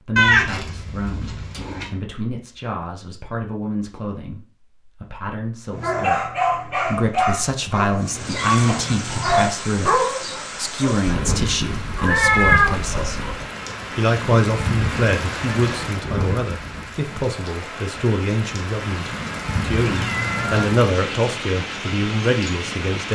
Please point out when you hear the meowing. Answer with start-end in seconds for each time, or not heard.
0.1-1.9, 11.1-13.4, 19.8-20.6.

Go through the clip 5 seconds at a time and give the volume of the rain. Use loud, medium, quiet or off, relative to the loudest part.
off, loud, loud, loud, loud.